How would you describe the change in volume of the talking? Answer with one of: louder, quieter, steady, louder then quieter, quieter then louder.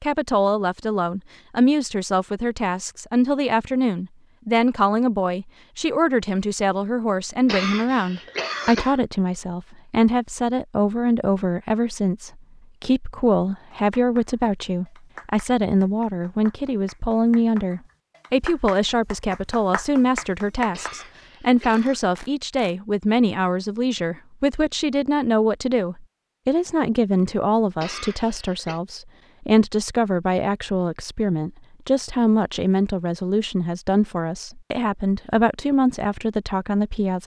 steady.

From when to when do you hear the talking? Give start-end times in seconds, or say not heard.
0.0-37.2.